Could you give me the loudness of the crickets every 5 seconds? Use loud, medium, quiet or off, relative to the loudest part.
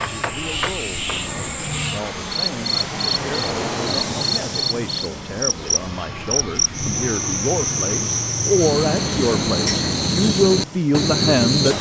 medium, loud, loud.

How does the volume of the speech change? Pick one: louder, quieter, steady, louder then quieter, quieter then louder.
louder.